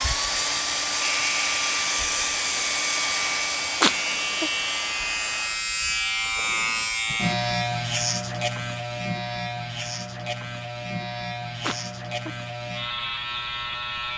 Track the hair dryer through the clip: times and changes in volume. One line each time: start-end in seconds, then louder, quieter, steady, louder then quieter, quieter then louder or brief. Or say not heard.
0.0-5.7 quieter.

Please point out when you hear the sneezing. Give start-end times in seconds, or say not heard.
3.8-4.5, 11.6-12.4.